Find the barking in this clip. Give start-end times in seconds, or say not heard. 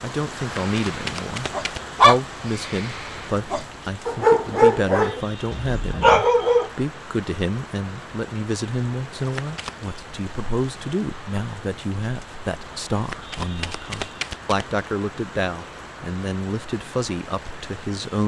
0.6-6.7.